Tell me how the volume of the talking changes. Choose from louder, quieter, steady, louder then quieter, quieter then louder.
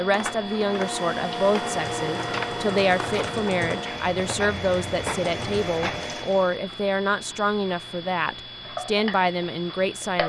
steady.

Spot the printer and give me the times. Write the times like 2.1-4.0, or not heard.
0.0-6.6.